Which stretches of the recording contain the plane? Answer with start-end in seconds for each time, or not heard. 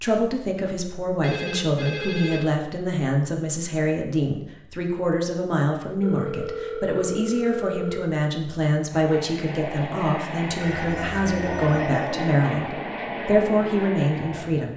8.9-14.7.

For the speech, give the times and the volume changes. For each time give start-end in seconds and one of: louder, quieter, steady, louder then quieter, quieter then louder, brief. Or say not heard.
0.0-14.7 steady.